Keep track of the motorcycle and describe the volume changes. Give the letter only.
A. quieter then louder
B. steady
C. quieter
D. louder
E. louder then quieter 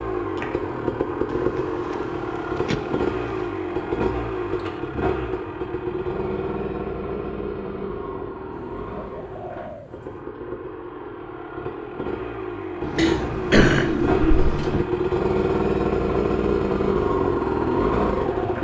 A.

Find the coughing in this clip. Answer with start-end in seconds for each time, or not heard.
12.9-14.8.